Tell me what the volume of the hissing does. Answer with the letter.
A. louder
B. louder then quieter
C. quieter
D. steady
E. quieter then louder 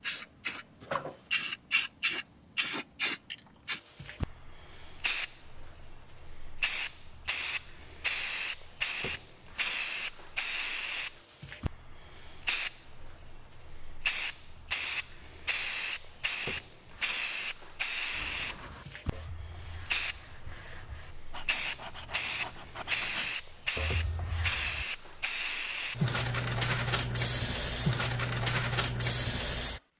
D.